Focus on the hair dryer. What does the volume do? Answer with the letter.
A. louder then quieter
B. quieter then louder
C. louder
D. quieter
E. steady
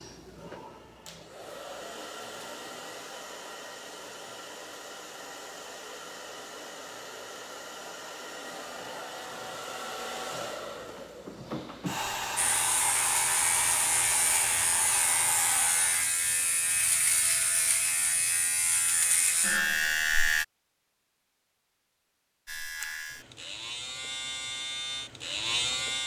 C.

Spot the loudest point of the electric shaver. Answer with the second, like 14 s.
20 s.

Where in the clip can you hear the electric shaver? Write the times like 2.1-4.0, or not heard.
12.3-20.4, 22.4-26.0.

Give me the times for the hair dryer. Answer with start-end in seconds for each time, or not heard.
0.0-16.1.